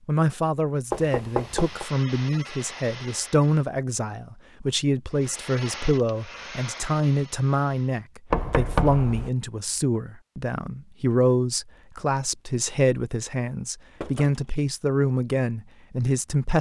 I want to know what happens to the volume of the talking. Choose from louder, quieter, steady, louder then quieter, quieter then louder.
steady.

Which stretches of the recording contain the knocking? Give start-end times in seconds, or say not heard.
0.9-1.9, 8.3-9.3, 14.0-14.5.